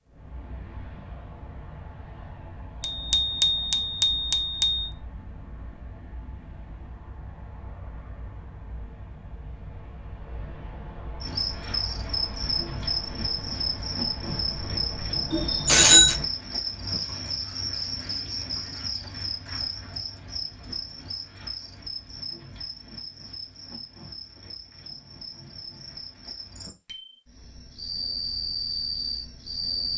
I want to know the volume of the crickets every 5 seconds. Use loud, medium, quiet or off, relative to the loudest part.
off, off, loud, loud, medium, loud.